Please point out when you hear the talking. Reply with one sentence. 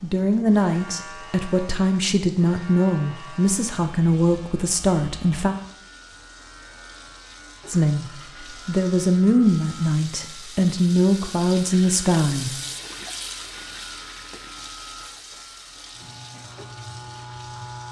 The talking can be heard from 0.0 to 5.5 s, from 7.7 to 8.1 s and from 8.7 to 12.5 s.